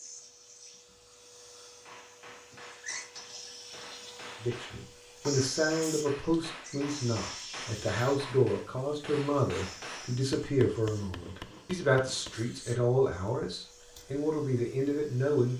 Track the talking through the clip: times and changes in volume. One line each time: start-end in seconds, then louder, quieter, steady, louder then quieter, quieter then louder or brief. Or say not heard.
4.4-15.5 steady.